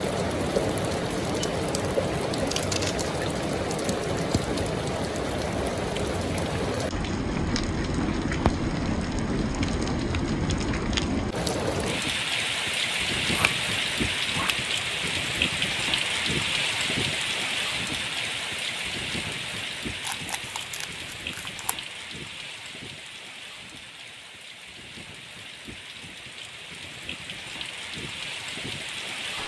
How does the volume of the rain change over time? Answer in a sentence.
The volume of the rain goes down.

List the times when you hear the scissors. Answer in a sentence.
The scissors can be heard from 2.4 to 3.1 s, from 13.2 to 15.1 s and from 20.0 to 21.8 s.